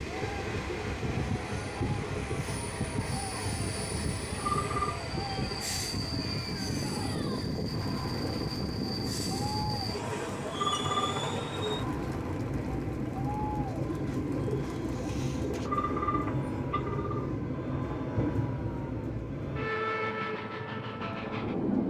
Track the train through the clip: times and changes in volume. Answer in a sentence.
The train can be heard from 0.0 to 21.8 s, at a steady volume.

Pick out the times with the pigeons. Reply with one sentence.
The pigeons can be heard from 13.7 to 15.7 s.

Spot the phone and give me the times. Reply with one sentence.
The phone can be heard from 4.3 to 5.0 s, from 10.5 to 11.2 s and from 15.6 to 17.3 s.